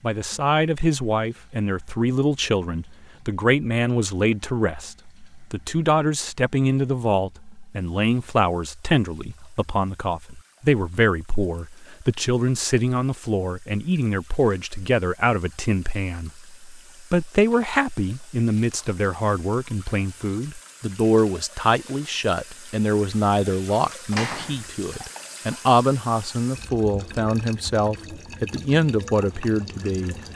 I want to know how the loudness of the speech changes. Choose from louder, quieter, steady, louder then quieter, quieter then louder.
steady.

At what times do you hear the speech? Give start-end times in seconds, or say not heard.
0.0-30.1.